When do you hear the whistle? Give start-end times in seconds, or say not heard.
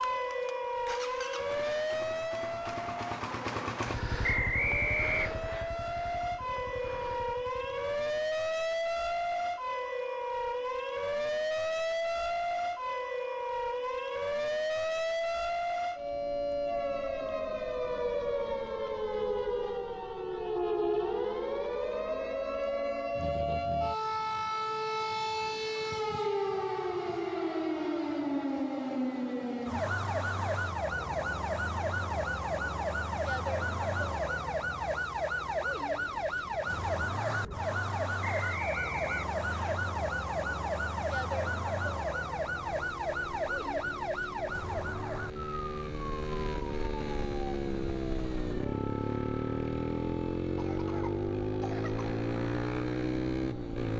4.2-5.7, 38.2-39.8.